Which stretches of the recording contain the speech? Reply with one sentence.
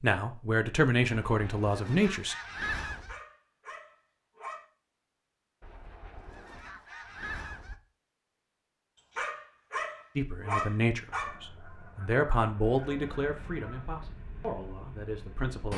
The speech can be heard from 0.0 to 2.4 s and from 10.2 to 15.7 s.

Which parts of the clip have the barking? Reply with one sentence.
You can hear the barking from 3.0 to 4.7 s and from 9.2 to 11.3 s.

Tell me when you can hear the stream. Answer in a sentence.
The stream can't be heard in this clip.